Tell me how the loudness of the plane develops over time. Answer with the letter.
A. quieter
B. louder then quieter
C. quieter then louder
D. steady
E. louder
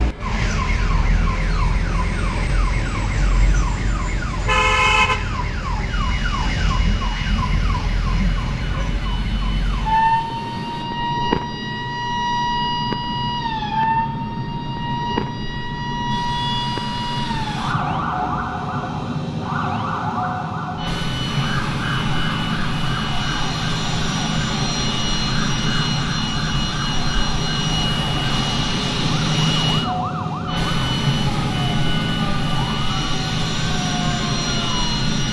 E.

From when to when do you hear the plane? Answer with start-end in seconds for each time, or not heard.
0.0-35.2.